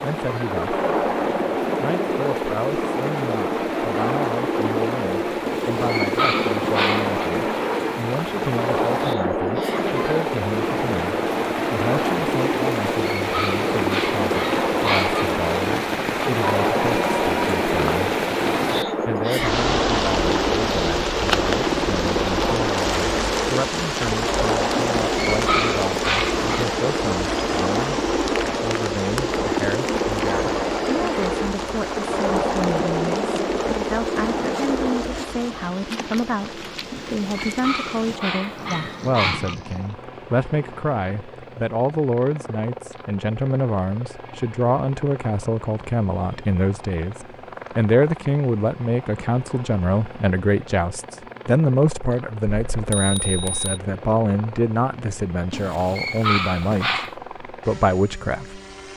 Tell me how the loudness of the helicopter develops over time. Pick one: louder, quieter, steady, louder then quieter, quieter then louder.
quieter.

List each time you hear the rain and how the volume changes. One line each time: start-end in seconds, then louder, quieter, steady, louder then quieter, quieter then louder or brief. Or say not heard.
0.0-40.0 louder then quieter.